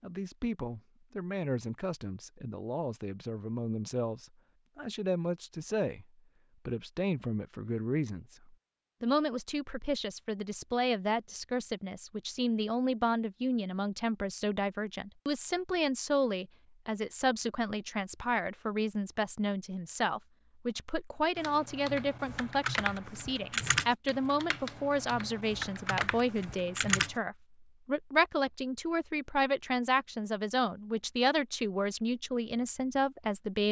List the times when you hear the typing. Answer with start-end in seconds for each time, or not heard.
21.4-27.1.